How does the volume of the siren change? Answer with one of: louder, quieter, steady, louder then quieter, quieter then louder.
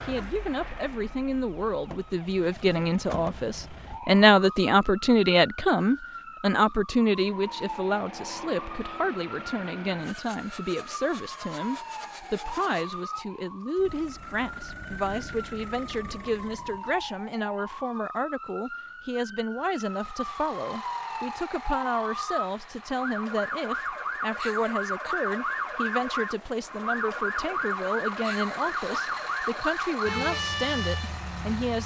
louder.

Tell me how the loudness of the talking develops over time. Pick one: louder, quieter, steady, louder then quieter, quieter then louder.
quieter.